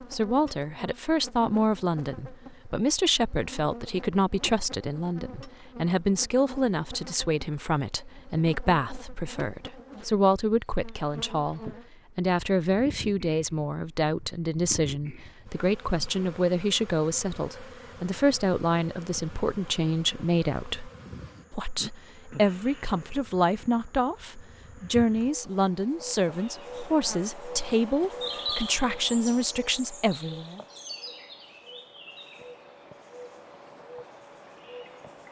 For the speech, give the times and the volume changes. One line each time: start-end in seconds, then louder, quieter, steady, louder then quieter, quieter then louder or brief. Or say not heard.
0.0-20.9 steady
21.5-30.6 steady.